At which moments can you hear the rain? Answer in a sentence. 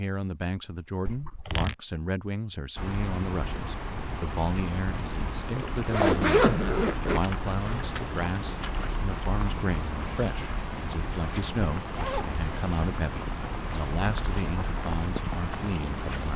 The rain can be heard from 2.8 to 16.3 s.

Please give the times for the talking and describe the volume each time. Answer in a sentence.
You can hear the talking from 0.0 to 16.3 s, at a steady volume.